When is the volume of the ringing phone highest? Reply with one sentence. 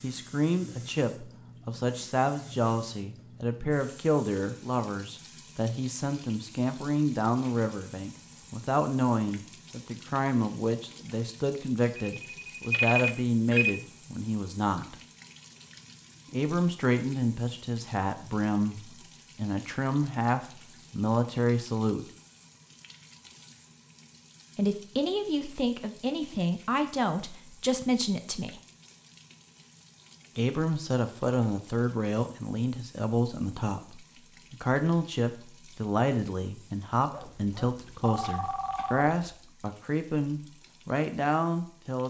The volume of the ringing phone peaks at 13 seconds.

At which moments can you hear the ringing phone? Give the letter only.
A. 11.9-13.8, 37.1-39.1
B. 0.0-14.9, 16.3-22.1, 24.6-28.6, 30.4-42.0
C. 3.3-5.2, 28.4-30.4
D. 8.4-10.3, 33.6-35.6
A.